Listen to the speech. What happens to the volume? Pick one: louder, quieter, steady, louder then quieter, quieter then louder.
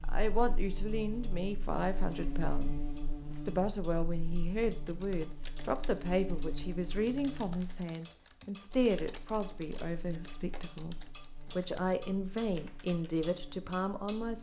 steady.